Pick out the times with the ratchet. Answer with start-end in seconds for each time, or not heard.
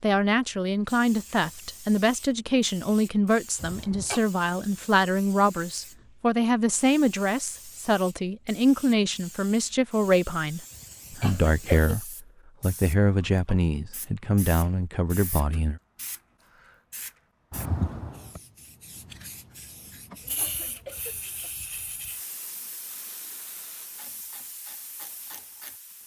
22.9-26.0.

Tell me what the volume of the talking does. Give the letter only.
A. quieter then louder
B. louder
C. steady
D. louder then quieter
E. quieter
C.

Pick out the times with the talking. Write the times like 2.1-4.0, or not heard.
0.0-15.8.